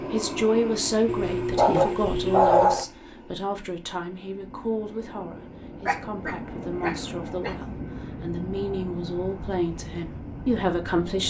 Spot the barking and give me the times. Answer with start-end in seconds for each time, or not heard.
1.1-2.9, 5.8-7.5.